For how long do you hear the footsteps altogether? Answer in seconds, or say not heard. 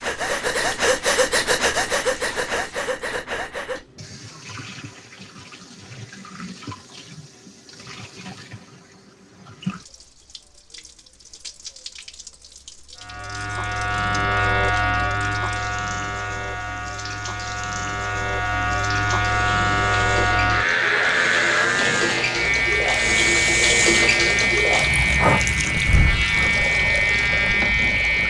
not heard.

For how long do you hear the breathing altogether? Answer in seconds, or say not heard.
7 s.